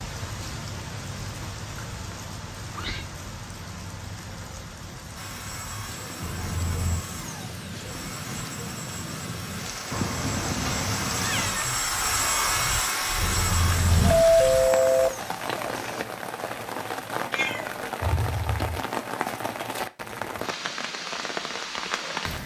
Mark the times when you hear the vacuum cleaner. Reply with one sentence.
You can hear the vacuum cleaner from 5.2 to 16.1 s.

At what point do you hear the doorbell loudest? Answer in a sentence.
The loudest moment of the doorbell is at 14 seconds.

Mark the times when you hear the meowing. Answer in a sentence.
You can hear the meowing from 2.1 to 3.0 s, from 9.9 to 11.7 s and from 17.3 to 18.8 s.